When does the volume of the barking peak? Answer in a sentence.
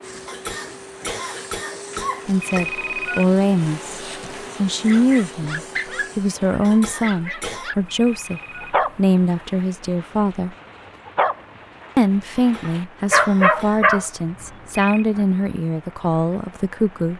The volume of the barking peaks at 13 seconds.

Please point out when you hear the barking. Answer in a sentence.
The barking can be heard from 4.8 to 14.1 s.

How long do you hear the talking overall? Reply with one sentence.
The talking can be heard for 13 seconds in total.